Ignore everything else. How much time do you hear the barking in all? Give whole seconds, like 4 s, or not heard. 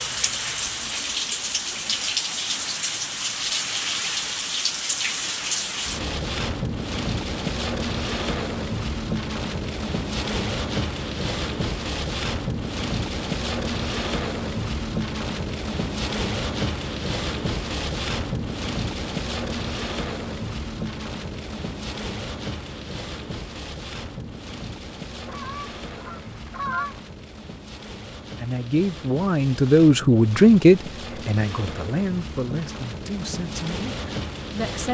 not heard.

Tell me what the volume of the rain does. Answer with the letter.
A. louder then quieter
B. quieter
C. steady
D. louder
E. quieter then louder
B.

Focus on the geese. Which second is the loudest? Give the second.
27 s.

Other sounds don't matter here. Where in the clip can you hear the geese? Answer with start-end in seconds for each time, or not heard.
25.2-27.0.